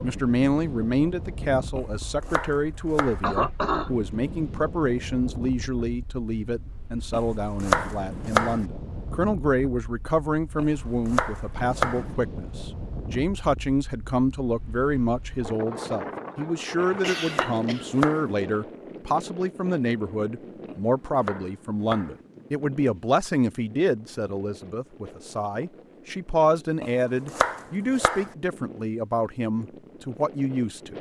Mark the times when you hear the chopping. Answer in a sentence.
You can hear the chopping from 1.8 to 3.2 s, from 7.1 to 8.6 s, from 10.6 to 12.1 s, from 16.8 to 18.2 s, from 20.6 to 22.1 s and from 26.8 to 28.3 s.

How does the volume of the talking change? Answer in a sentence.
The loudness of the talking stays about the same.